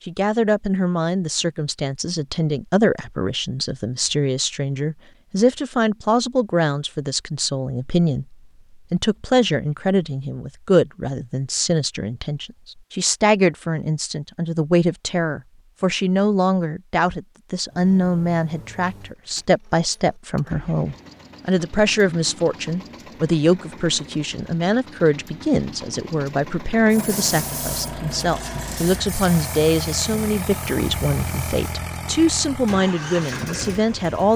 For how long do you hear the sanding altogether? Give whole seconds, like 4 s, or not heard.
not heard.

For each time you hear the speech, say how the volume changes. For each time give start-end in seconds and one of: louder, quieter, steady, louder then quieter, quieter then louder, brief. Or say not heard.
0.1-34.3 steady.